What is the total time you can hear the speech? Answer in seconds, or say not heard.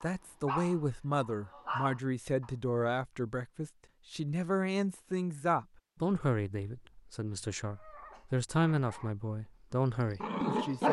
11 s.